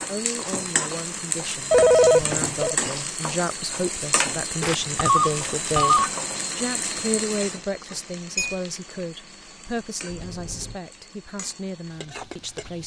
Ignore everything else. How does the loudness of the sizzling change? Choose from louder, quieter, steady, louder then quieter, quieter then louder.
quieter.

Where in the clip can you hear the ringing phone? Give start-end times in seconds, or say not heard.
1.7-2.8, 4.6-6.1, 10.1-10.8.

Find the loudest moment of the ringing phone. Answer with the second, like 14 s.
2 s.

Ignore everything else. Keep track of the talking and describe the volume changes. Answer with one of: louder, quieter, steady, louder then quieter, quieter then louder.
louder then quieter.